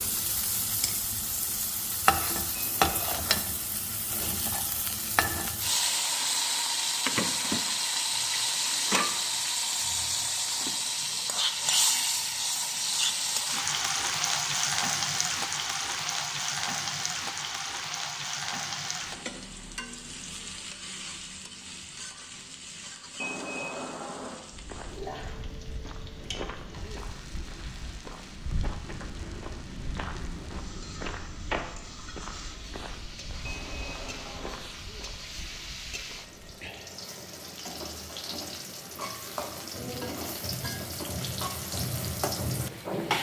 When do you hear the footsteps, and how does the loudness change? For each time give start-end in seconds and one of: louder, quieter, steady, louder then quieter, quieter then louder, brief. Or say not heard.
24.5-36.5 louder then quieter.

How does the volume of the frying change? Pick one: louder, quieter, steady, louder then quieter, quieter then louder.
quieter then louder.